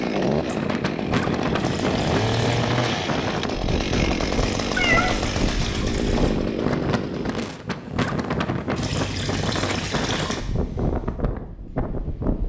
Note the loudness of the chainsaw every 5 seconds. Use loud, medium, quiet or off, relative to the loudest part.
loud, loud, off.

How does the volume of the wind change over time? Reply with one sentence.
The volume of the wind stays about the same.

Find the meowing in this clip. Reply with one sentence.
The meowing can be heard from 4.8 to 5.2 s.